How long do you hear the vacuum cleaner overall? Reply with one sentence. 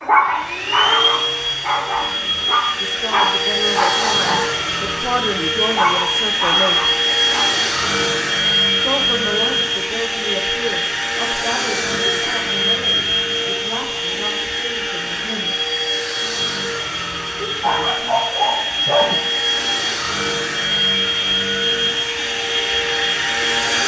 You can hear the vacuum cleaner for 24 seconds altogether.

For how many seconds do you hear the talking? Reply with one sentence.
The talking can be heard for 12 seconds in total.